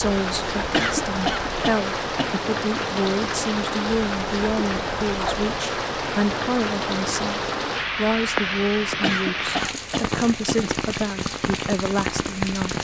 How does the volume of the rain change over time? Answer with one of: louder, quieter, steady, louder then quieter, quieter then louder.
steady.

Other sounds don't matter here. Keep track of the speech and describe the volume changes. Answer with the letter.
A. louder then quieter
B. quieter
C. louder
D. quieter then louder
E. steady
E.